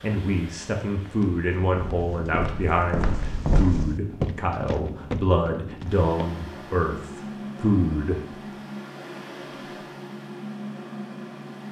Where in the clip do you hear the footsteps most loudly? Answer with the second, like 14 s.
4 s.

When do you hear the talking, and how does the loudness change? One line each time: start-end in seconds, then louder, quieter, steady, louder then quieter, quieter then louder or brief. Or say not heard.
0.0-8.2 steady.